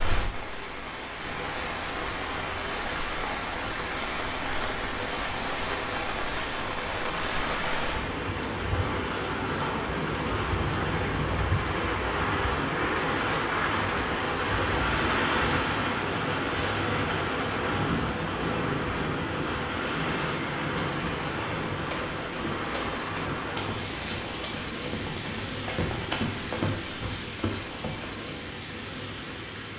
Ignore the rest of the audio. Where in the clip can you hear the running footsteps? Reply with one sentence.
The running footsteps can be heard from 21.7 to 28.1 s.